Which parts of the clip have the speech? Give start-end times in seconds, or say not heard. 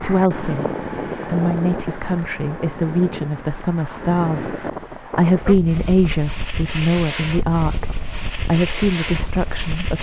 0.0-9.9.